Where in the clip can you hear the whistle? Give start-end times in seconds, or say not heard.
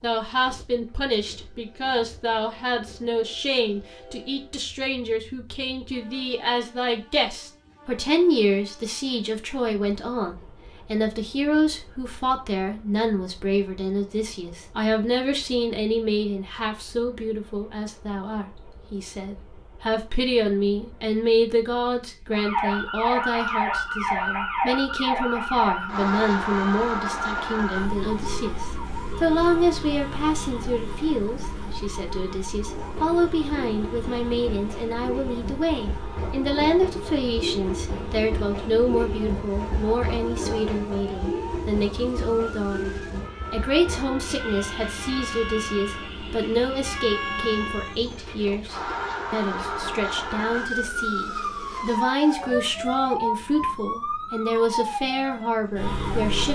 not heard.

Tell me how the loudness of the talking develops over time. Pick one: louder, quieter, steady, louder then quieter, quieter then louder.
steady.